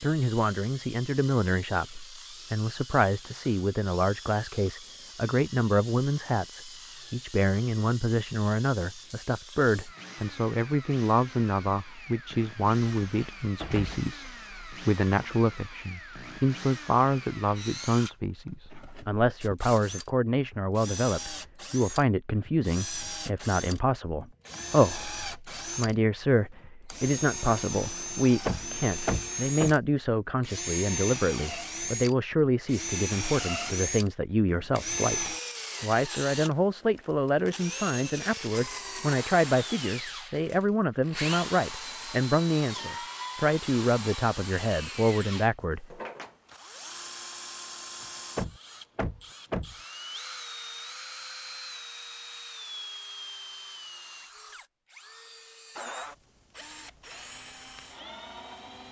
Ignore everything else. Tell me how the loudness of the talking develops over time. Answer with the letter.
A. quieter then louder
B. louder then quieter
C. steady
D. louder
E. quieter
C.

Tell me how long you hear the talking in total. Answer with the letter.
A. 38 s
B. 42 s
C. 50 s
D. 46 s
D.